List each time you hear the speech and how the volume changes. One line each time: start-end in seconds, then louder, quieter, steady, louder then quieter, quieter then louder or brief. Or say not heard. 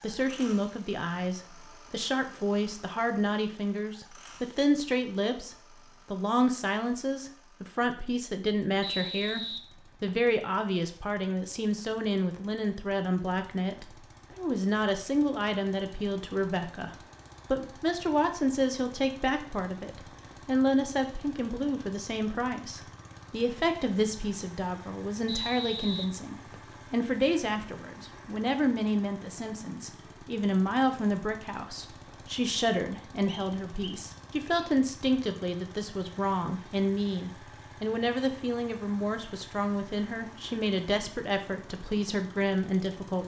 0.0-43.2 steady.